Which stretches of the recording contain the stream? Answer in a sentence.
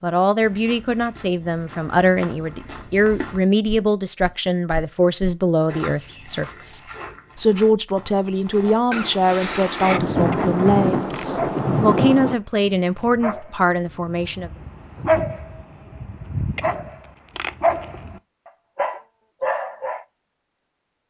You can't hear the stream here.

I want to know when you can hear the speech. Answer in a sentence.
You can hear the speech from 0.0 to 14.5 s.